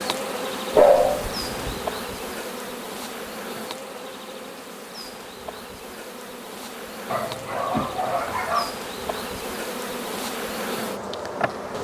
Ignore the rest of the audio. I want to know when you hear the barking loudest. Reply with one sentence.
The loudest moment of the barking is at 1 second.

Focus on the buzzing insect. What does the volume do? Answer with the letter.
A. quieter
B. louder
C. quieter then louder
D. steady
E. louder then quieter
C.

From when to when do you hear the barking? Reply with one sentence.
You can hear the barking from 0.8 to 1.8 s and from 7.1 to 8.8 s.